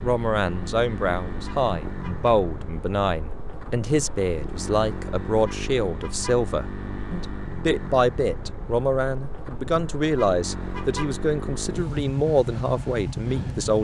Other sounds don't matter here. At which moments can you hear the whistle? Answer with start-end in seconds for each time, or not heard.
not heard.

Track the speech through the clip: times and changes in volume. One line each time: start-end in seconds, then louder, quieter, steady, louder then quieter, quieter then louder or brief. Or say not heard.
0.0-13.7 steady.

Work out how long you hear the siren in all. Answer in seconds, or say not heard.
not heard.